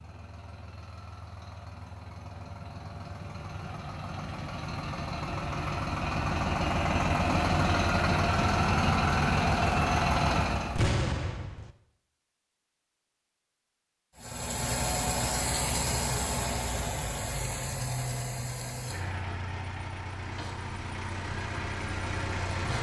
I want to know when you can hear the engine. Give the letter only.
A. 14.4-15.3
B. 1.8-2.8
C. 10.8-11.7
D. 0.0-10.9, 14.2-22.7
D.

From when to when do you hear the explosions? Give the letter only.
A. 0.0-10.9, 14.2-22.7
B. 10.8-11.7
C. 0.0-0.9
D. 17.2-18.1
B.